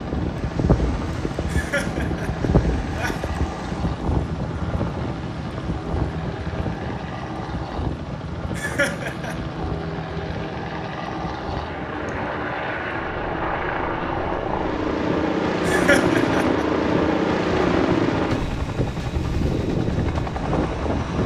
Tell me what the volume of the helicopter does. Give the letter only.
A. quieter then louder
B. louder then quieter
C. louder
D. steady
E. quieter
C.